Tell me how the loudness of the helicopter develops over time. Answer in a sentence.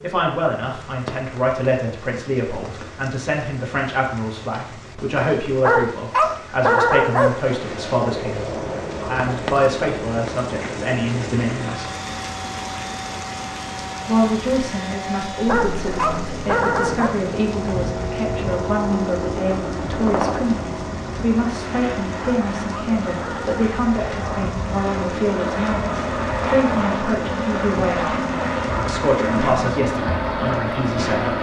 The volume of the helicopter goes up.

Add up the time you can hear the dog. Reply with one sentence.
The dog can be heard for 5 seconds in total.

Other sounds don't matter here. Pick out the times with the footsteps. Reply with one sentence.
The footsteps can't be heard in this clip.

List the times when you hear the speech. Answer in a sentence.
You can hear the speech from 0.0 to 11.8 s, from 14.1 to 28.1 s and from 28.9 to 31.3 s.